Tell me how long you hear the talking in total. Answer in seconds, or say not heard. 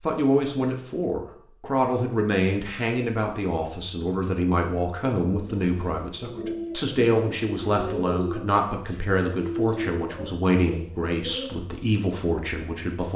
13 s.